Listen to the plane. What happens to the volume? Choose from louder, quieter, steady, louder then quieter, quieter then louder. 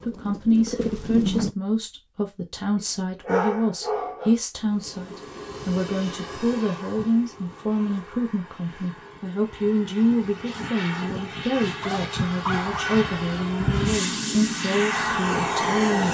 quieter then louder.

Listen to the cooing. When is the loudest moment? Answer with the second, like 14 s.
1 s.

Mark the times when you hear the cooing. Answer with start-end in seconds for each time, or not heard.
0.0-1.6.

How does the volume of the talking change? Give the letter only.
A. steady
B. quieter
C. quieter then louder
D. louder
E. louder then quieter
A.